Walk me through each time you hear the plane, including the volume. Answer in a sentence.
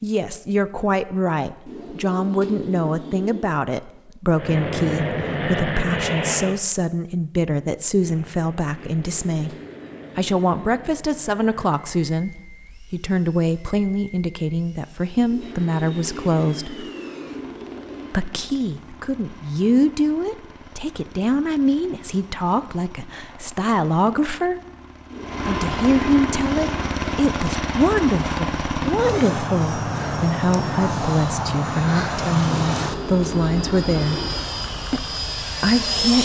You can hear the plane briefly from 4.3 to 6.6 s; and from 7.9 to 36.2 s, getting louder.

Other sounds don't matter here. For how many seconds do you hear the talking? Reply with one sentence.
You can hear the talking for 33 seconds altogether.